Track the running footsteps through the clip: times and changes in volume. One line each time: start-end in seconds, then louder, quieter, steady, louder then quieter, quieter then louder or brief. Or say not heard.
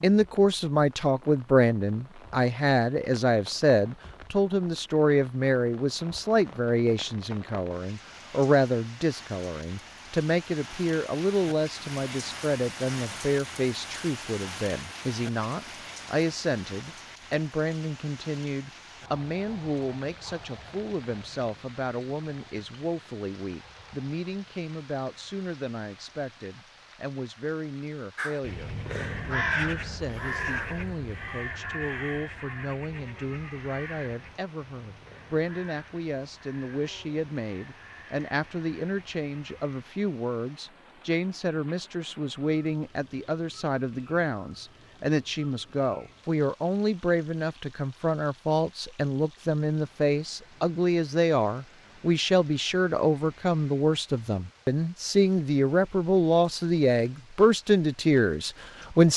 not heard.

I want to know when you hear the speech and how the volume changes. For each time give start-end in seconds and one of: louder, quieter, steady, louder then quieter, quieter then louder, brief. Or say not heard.
0.0-59.1 quieter then louder.